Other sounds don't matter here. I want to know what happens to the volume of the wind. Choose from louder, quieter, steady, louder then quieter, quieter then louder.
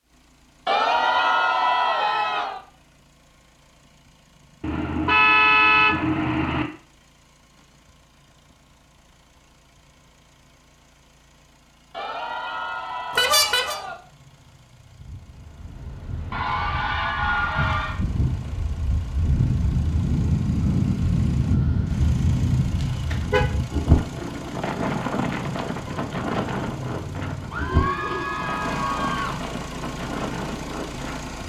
louder then quieter.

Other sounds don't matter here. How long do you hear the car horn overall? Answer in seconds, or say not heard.
3 s.